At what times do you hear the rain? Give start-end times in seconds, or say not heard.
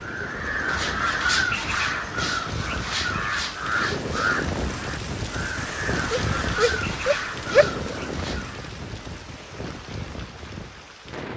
0.0-11.3.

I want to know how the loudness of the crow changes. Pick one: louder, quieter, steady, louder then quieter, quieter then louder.
quieter.